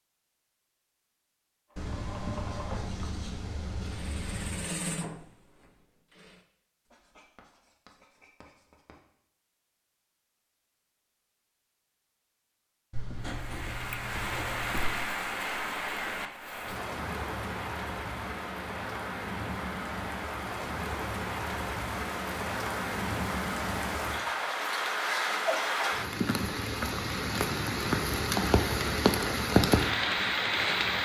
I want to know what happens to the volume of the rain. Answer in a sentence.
The loudness of the rain goes up.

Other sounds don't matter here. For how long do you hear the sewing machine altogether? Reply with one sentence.
The sewing machine can be heard for 5 seconds in total.